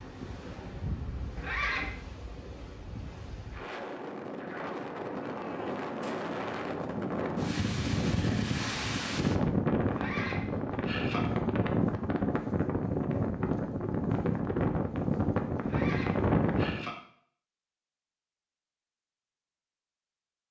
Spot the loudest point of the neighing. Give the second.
2 s.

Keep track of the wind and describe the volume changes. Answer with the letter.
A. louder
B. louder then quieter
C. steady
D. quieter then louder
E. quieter
A.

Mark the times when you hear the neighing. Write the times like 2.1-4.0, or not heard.
1.4-2.0, 9.9-11.2, 15.6-16.9.